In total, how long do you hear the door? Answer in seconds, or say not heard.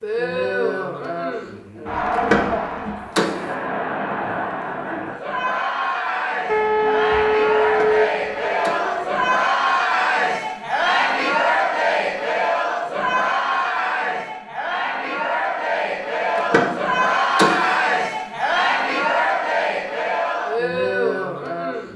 4 s.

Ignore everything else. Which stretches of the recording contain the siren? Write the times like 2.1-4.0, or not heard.
6.5-9.3.